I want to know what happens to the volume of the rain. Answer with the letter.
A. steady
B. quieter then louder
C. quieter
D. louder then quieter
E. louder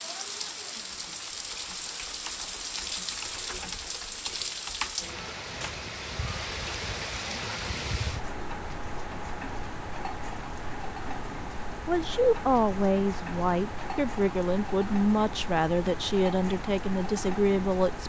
A.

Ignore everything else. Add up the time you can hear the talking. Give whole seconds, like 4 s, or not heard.
6 s.